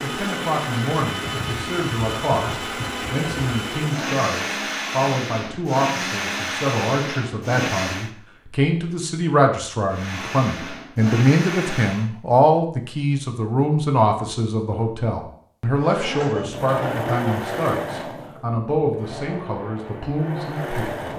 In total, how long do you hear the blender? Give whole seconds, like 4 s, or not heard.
16 s.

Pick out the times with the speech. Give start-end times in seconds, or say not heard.
0.0-21.1.